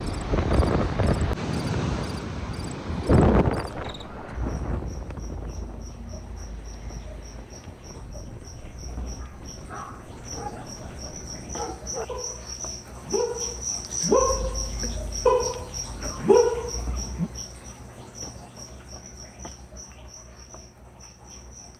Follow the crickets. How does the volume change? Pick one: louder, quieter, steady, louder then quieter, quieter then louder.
louder then quieter.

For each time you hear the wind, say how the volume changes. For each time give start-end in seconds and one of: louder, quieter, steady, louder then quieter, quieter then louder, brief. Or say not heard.
0.0-11.6 quieter.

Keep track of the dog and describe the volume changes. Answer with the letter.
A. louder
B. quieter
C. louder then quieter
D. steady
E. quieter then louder
A.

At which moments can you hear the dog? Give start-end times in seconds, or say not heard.
9.2-17.3.